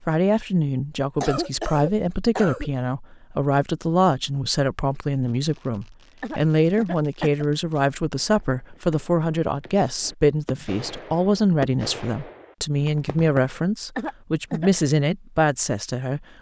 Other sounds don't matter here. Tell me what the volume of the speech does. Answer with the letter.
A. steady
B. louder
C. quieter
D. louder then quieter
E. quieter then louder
A.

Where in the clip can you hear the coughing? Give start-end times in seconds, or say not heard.
1.2-2.7, 6.2-7.5, 13.9-14.7.